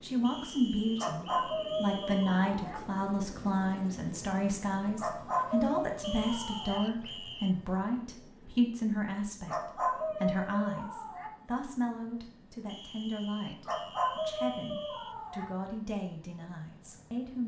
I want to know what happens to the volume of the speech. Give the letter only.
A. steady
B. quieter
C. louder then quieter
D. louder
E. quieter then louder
B.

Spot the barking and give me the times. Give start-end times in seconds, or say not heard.
0.9-2.8, 5.0-6.8, 9.4-11.3, 13.7-15.4.